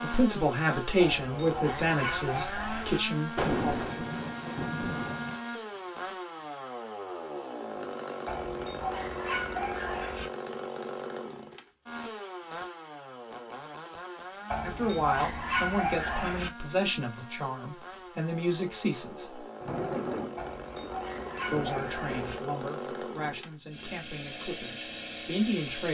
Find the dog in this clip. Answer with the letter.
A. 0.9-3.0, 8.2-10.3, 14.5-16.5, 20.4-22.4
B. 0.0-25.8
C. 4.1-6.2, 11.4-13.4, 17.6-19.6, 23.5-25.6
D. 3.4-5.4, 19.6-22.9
A.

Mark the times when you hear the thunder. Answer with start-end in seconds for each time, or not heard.
3.4-5.4, 19.6-22.9.